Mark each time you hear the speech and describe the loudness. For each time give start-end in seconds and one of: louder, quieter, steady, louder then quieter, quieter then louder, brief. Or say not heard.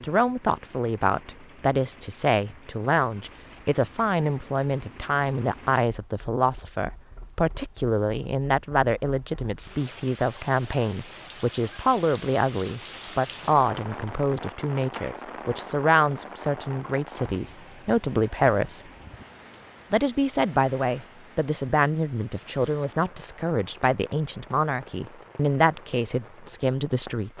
0.0-18.9 steady
19.9-27.3 steady.